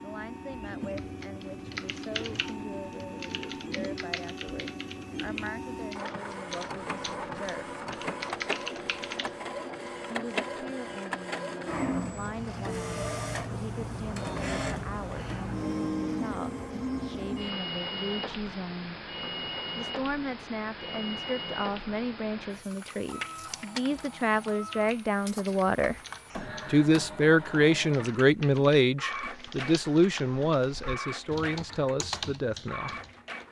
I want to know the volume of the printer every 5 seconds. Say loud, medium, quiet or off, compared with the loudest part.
medium, loud, loud, loud, medium, medium, medium.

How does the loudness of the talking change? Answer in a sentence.
The volume of the talking goes up.